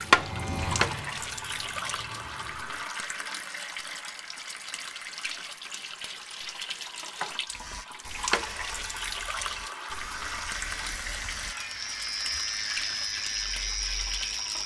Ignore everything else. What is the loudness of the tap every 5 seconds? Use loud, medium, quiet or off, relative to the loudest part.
loud, medium, medium.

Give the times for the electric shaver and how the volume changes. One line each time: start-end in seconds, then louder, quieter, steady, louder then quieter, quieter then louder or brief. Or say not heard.
0.0-2.9 brief
7.5-14.6 louder.